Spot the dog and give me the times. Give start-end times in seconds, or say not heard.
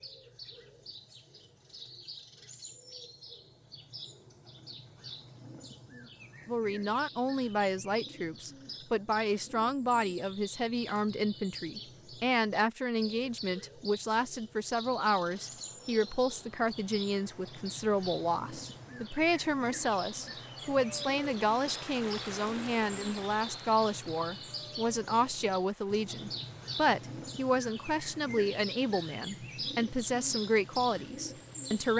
not heard.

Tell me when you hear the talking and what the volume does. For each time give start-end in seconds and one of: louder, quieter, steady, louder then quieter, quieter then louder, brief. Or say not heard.
6.5-31.9 steady.